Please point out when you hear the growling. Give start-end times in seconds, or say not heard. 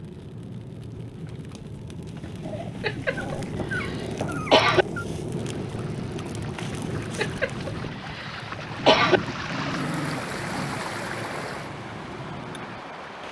2.4-5.0, 8.8-10.8.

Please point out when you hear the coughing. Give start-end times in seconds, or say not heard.
2.8-4.8, 7.2-9.2.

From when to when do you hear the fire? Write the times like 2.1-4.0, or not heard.
0.0-12.9.